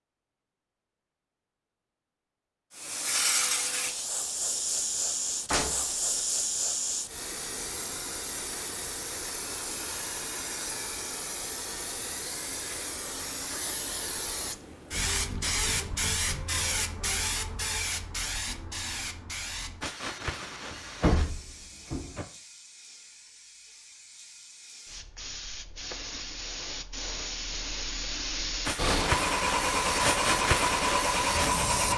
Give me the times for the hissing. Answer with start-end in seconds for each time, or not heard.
2.7-31.9.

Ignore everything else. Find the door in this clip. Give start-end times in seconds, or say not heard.
5.5-6.2, 20.7-22.2.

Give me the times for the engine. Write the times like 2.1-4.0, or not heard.
28.8-31.9.